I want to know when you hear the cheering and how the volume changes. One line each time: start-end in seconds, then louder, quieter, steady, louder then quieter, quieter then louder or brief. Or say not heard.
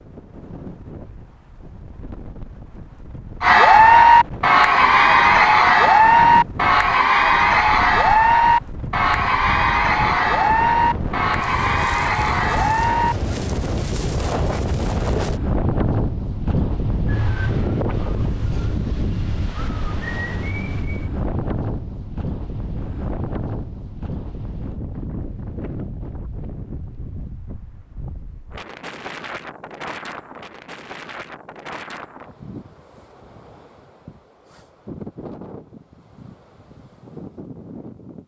3.4-13.2 quieter.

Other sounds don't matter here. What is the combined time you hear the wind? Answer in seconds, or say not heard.
38 s.